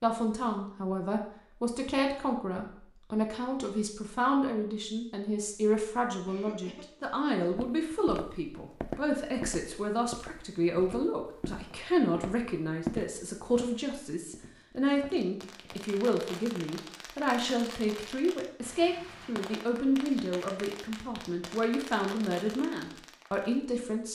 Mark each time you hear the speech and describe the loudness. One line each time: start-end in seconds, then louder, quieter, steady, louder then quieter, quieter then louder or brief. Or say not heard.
0.0-24.1 steady.